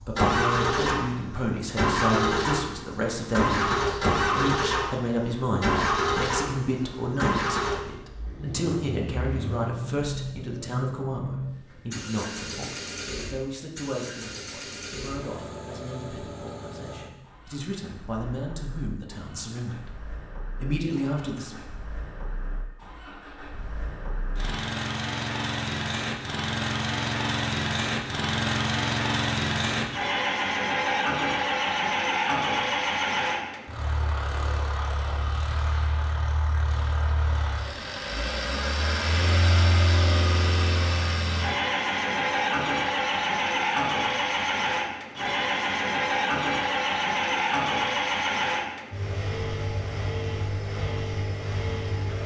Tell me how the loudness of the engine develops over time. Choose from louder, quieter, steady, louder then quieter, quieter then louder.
quieter then louder.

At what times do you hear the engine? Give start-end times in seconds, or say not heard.
0.0-52.2.